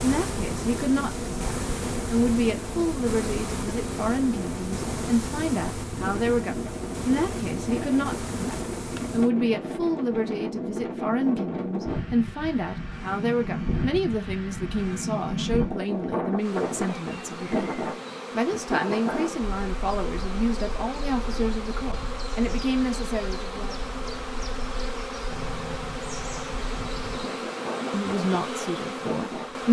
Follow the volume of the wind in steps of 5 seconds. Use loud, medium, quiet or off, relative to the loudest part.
medium, loud, loud, loud, quiet, medium.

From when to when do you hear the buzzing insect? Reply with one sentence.
You can hear the buzzing insect from 0.0 to 9.3 s and from 16.4 to 29.6 s.